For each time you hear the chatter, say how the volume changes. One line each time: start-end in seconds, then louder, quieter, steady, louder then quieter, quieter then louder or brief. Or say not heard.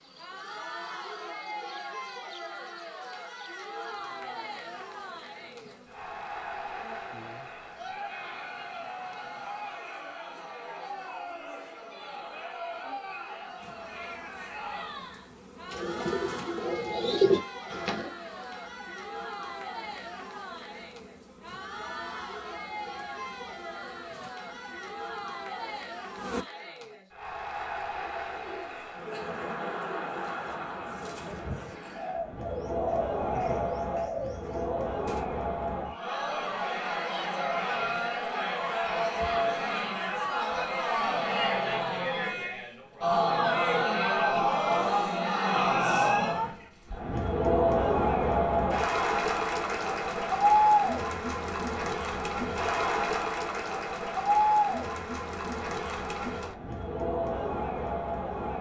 0.0-58.5 louder.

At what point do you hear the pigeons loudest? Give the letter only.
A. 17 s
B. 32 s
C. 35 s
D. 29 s
A.